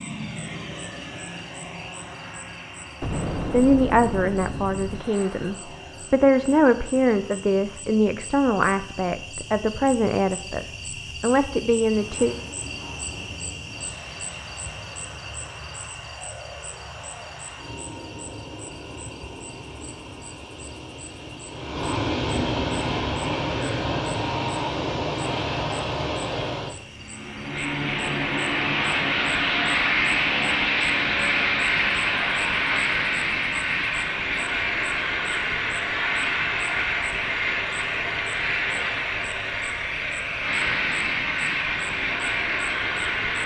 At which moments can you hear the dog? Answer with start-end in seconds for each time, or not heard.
not heard.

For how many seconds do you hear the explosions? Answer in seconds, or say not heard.
2 s.